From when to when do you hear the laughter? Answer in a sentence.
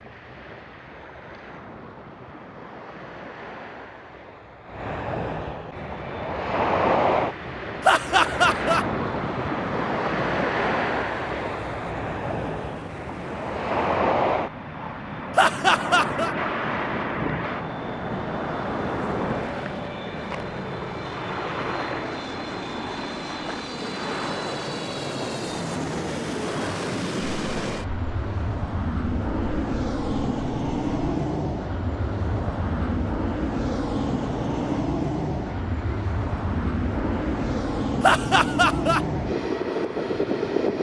You can hear the laughter from 7.8 to 8.8 s, from 15.3 to 16.4 s and from 38.0 to 39.0 s.